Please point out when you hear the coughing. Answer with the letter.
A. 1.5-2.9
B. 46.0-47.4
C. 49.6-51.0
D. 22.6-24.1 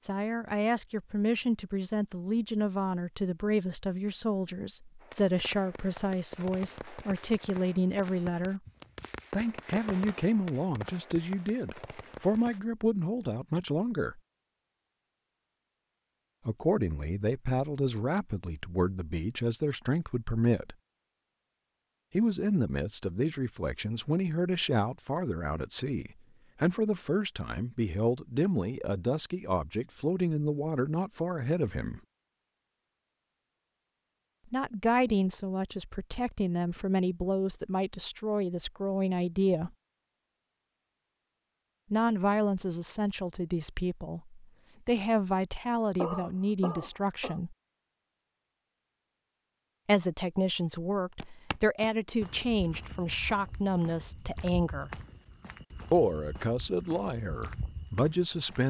B.